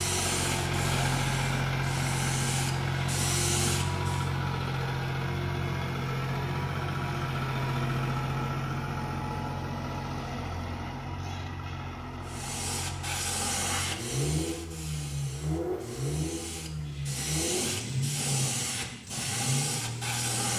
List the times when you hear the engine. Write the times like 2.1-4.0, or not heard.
0.0-20.5.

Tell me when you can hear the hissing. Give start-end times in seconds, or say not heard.
0.0-4.3, 12.2-20.5.